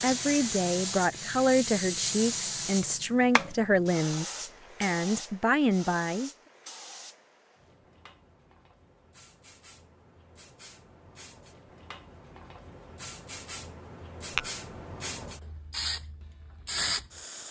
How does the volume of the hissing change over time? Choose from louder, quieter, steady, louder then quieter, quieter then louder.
quieter then louder.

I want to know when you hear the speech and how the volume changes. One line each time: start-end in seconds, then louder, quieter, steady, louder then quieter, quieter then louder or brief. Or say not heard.
0.0-6.3 steady.